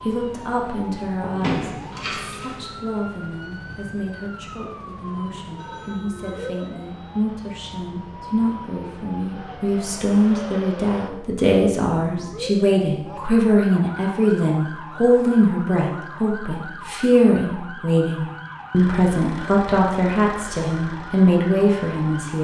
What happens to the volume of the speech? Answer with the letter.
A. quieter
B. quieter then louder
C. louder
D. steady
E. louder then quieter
C.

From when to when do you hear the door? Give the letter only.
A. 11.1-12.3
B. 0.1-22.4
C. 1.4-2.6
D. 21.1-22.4
C.